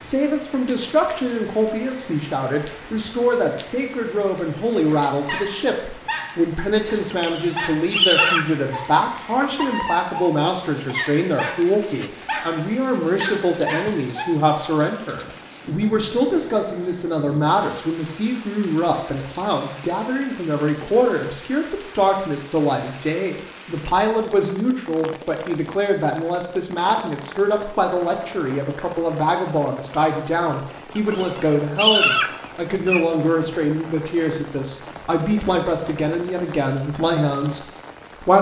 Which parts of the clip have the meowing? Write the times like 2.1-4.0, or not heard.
7.1-8.5, 30.9-33.0.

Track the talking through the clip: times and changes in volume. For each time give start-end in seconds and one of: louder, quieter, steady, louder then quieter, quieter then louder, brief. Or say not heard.
0.0-38.3 steady.